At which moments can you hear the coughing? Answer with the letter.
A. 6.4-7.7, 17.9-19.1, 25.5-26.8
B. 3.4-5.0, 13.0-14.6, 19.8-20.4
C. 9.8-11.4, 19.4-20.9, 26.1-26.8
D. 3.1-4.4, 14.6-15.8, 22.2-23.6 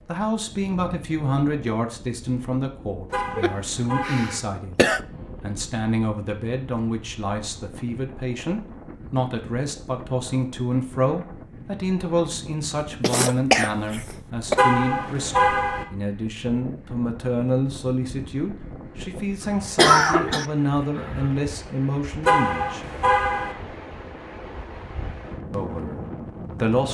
B.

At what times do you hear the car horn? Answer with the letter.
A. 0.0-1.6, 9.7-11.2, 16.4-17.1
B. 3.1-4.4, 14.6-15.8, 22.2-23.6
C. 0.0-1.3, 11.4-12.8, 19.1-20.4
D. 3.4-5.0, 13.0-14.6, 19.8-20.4
B.